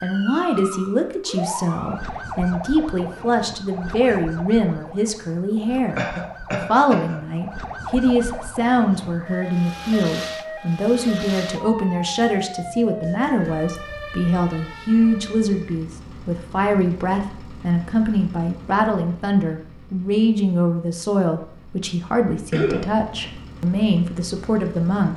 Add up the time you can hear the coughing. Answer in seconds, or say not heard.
2 s.